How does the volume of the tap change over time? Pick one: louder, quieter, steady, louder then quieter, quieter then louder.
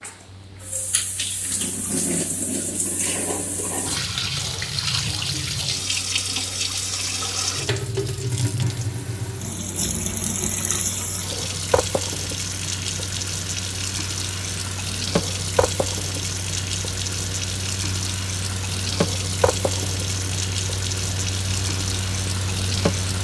steady.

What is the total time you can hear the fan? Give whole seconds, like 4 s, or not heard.
23 s.